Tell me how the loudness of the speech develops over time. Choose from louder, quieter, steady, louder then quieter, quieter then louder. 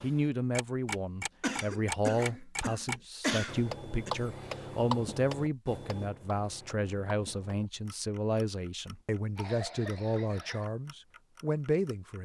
steady.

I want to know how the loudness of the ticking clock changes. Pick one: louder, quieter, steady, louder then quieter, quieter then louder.
quieter.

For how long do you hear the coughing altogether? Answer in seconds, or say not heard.
4 s.